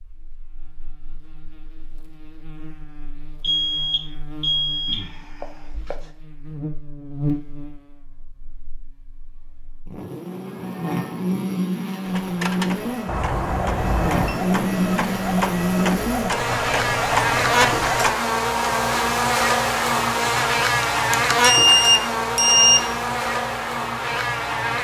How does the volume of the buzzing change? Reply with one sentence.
The volume of the buzzing goes up.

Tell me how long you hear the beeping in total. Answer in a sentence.
The beeping can be heard for 6 seconds in total.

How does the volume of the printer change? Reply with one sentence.
The volume of the printer goes up.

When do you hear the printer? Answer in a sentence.
You can hear the printer from 12.0 to 18.1 s.